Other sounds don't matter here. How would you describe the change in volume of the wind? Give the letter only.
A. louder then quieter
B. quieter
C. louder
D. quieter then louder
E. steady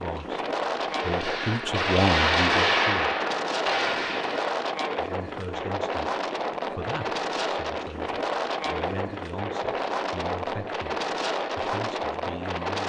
E.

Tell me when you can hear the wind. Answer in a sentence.
You can hear the wind from 0.0 to 12.8 s.